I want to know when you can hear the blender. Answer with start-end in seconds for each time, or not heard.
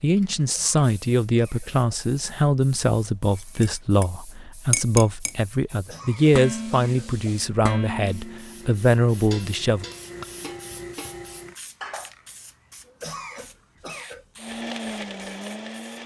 14.3-16.0.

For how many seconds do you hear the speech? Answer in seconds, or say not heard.
10 s.